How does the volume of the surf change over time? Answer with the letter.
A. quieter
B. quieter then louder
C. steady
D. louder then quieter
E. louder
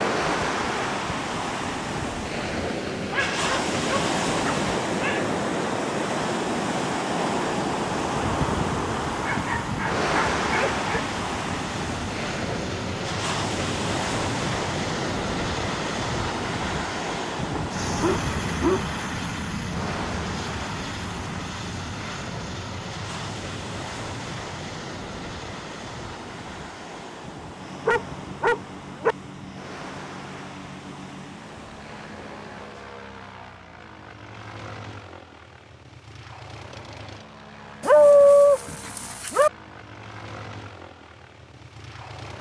A.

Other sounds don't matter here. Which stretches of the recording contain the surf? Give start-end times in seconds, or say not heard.
0.0-32.9.